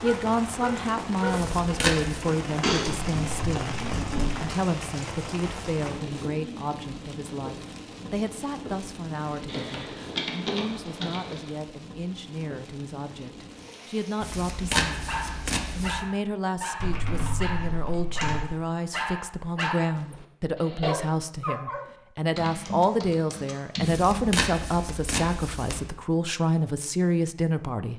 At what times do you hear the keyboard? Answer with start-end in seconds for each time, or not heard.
2.6-4.4, 9.4-11.5, 16.8-18.4, 22.4-24.2.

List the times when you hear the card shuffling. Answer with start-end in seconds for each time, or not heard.
1.3-2.2, 14.2-16.1, 23.8-25.9.